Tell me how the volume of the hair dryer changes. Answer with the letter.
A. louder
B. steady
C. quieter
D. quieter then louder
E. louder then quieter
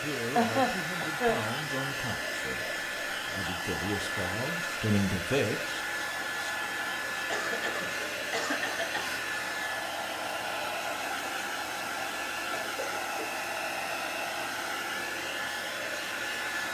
B.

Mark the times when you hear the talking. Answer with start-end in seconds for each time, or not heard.
0.0-5.8.